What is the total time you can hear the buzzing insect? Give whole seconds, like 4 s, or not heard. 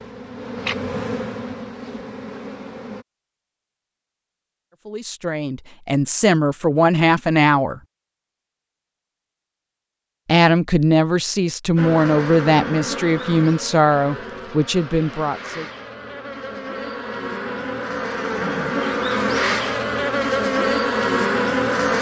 13 s.